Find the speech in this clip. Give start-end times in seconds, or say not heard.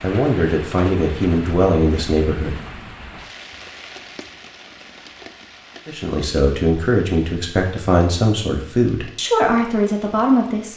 0.0-2.5, 5.8-10.7.